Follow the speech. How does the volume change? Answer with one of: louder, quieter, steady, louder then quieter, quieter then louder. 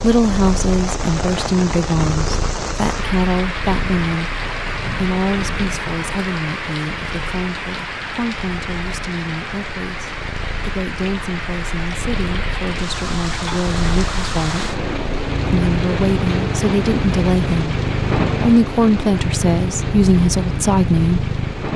quieter then louder.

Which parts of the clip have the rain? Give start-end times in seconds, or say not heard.
0.0-21.7.